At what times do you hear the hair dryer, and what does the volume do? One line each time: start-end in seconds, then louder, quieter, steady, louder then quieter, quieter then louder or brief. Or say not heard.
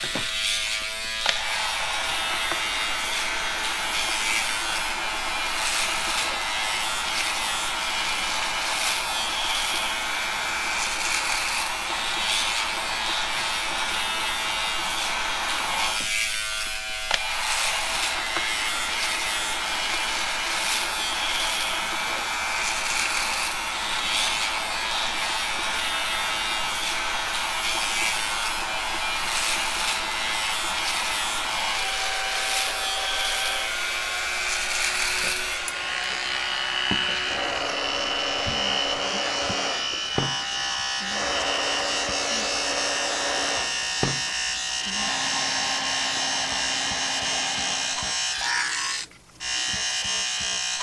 0.0-48.2 steady.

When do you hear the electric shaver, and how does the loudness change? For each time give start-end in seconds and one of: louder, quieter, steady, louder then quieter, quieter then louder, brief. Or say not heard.
0.0-50.7 steady.